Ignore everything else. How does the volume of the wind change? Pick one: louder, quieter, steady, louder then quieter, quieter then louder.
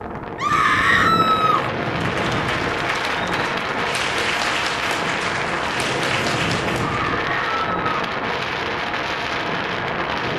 steady.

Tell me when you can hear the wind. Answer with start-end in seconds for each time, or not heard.
0.0-10.3.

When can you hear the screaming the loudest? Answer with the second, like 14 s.
1 s.